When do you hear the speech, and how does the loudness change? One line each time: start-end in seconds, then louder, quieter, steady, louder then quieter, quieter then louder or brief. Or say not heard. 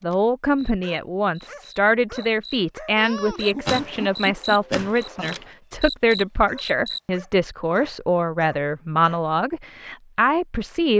0.0-10.9 steady.